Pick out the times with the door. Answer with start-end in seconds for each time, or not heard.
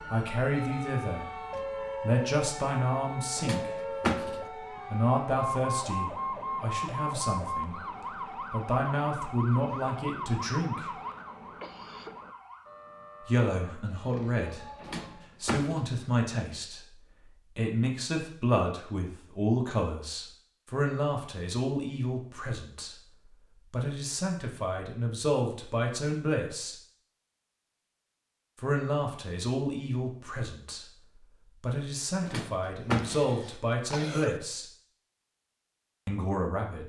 3.4-4.4, 14.8-15.8, 32.2-33.3.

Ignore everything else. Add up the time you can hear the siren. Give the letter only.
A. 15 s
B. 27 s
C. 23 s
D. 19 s
A.